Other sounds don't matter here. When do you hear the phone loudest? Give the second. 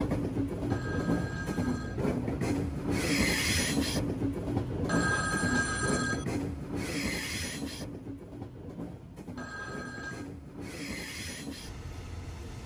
5 s.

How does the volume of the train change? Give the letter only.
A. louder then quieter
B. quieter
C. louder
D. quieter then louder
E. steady
B.